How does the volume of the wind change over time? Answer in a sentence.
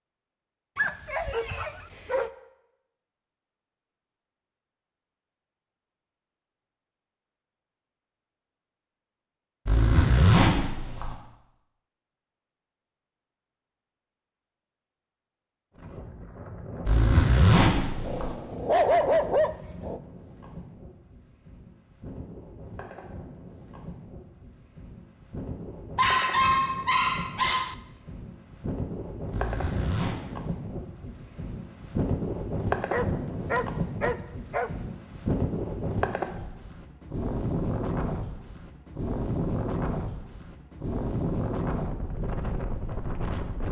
The loudness of the wind goes up.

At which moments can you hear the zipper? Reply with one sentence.
The zipper can be heard from 9.7 to 11.2 s, from 16.9 to 18.4 s and from 29.3 to 30.1 s.